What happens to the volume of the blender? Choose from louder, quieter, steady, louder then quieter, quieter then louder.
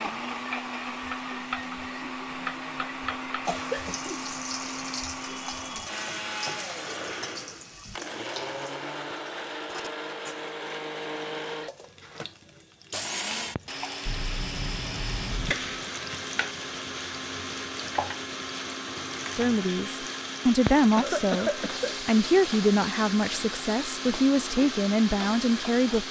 steady.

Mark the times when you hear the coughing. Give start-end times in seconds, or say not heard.
3.5-4.2, 14.1-15.8, 20.9-21.9.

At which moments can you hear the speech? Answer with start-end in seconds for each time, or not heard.
19.4-26.0.